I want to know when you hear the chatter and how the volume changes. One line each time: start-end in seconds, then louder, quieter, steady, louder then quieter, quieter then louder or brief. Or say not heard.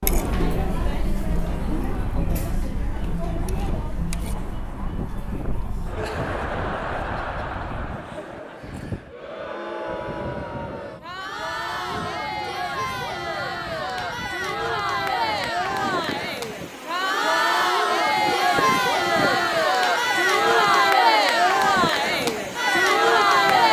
0.0-23.6 louder.